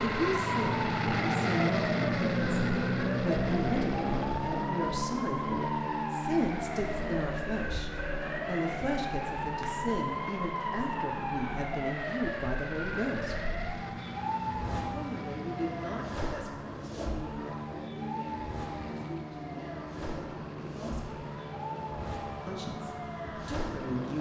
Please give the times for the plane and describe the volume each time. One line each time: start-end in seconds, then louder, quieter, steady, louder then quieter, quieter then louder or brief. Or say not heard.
0.0-24.1 quieter.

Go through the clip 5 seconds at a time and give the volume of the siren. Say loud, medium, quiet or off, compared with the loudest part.
loud, loud, loud, medium, medium.